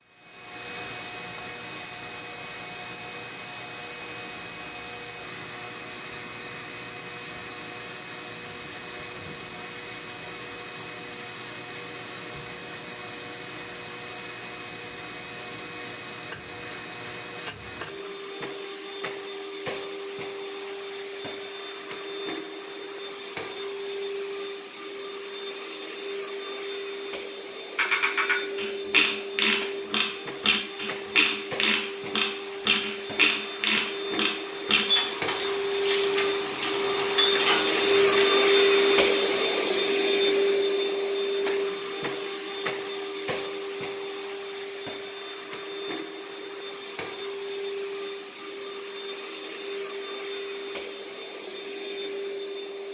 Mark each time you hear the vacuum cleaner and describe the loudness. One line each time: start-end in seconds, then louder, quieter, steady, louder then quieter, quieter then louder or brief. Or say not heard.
0.1-52.8 louder then quieter.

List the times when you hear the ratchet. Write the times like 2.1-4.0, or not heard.
27.8-38.2.